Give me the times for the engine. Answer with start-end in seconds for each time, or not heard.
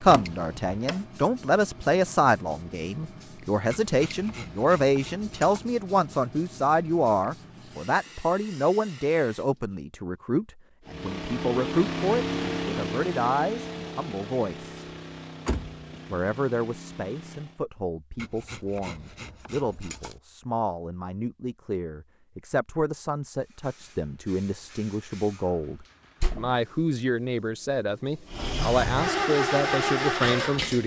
10.8-17.6, 28.2-30.8.